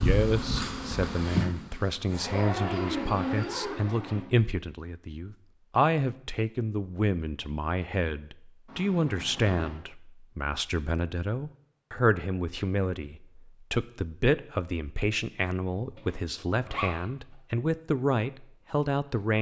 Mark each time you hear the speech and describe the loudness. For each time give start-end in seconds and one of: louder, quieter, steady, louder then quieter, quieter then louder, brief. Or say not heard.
0.0-19.3 steady.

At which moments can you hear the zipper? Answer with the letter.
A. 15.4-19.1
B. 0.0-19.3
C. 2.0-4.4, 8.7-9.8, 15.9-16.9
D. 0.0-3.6
C.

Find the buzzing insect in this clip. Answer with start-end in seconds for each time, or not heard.
0.0-3.6.